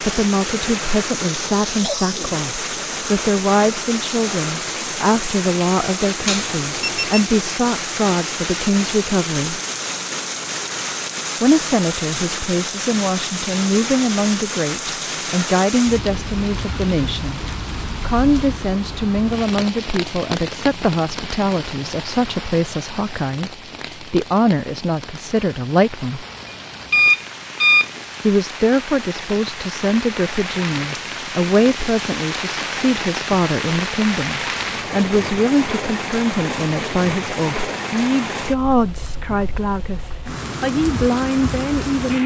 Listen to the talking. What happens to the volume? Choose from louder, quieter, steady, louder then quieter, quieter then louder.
steady.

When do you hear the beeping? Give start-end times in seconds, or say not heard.
6.2-7.2, 26.9-27.9.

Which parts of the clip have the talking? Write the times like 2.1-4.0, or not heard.
0.0-9.6, 11.4-17.4, 18.0-26.2, 28.2-42.2.